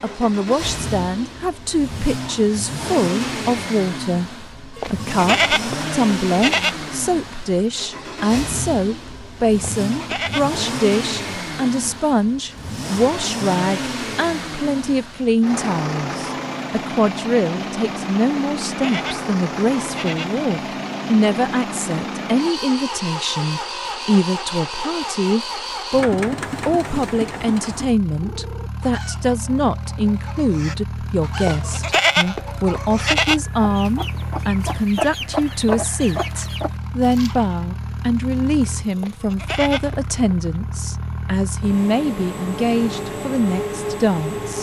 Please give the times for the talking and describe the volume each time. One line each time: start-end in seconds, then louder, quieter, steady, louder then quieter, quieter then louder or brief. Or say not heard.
0.0-44.5 steady.